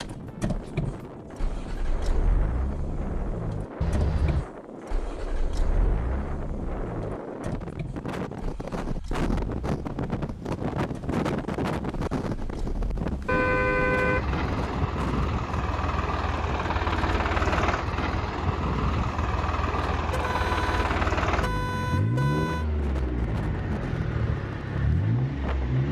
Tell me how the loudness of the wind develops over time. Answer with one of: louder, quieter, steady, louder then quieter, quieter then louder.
louder then quieter.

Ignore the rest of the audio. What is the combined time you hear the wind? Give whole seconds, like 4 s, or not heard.
26 s.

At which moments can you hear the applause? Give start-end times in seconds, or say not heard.
not heard.